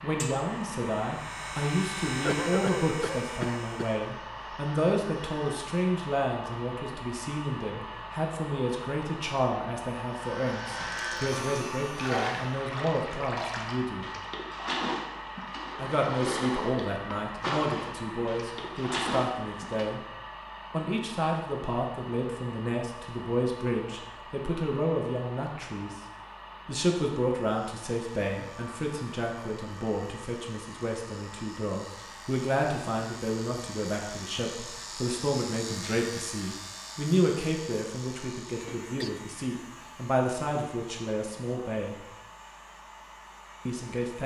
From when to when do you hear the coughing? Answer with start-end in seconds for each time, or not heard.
2.2-4.0, 38.5-39.2.